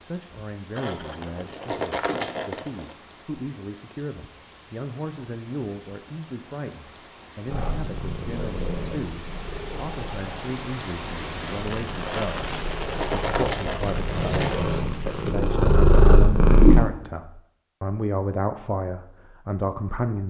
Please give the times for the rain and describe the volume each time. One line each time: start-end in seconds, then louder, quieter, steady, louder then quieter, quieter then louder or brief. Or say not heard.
0.0-15.3 louder.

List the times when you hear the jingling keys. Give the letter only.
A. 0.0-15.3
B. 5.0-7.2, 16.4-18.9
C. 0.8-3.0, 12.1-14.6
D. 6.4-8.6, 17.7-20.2
C.